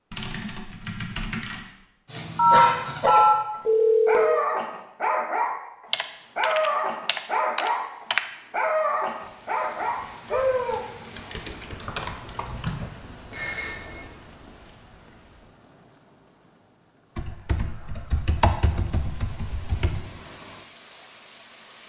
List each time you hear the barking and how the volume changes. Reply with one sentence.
You can hear the barking from 2.0 to 10.8 s, at a steady volume.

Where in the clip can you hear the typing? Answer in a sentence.
You can hear the typing from 0.1 to 1.8 s, from 5.9 to 8.2 s, from 11.2 to 12.9 s and from 17.1 to 20.1 s.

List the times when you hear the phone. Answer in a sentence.
You can hear the phone from 2.4 to 4.4 s and from 13.3 to 14.1 s.